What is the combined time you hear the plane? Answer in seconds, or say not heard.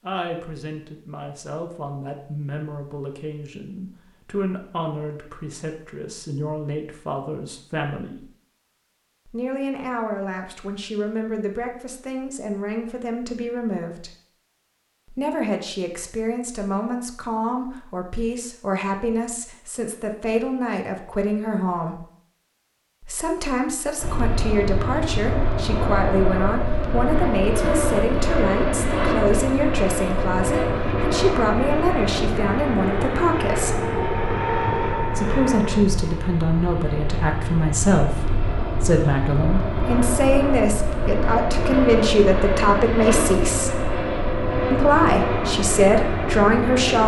23 s.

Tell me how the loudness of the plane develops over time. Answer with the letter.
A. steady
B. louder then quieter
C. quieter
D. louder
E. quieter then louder
A.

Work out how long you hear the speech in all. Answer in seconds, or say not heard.
42 s.